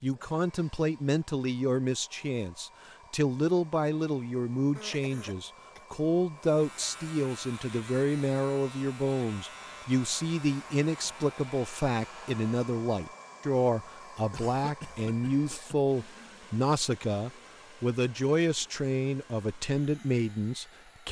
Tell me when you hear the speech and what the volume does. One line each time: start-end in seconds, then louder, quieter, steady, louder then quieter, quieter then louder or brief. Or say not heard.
0.0-21.0 steady.